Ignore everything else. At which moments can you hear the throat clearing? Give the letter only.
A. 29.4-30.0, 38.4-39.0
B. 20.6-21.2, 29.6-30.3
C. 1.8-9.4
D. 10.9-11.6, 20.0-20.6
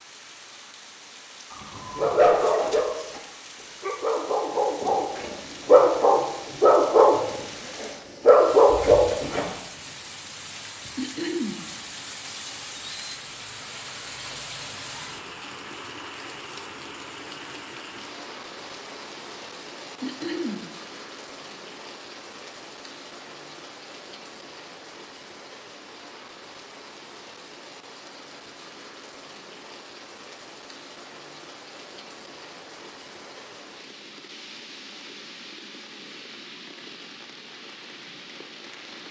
D.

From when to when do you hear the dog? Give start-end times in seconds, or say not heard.
1.8-9.4.